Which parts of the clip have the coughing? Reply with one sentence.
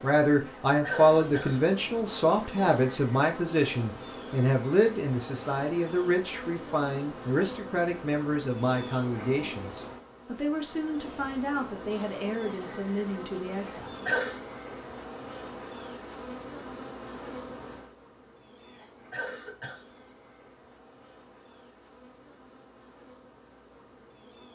The coughing can be heard from 0.3 to 1.7 s, from 13.6 to 14.4 s and from 18.6 to 19.8 s.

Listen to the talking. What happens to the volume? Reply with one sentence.
The loudness of the talking goes down.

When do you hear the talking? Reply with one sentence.
The talking can be heard from 0.0 to 14.1 s.